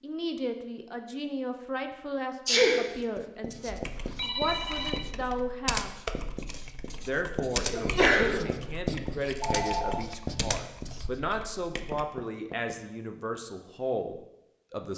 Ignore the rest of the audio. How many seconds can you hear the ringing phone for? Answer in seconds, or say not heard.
2 s.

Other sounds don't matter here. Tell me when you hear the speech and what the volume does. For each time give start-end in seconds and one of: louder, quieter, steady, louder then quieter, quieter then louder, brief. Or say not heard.
0.0-5.9 steady
7.0-14.9 steady.